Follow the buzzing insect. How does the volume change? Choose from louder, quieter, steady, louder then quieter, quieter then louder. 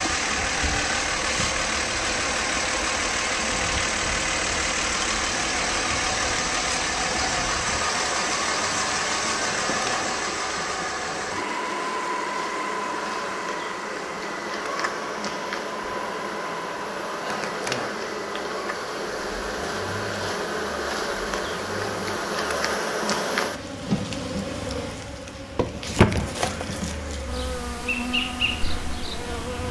louder.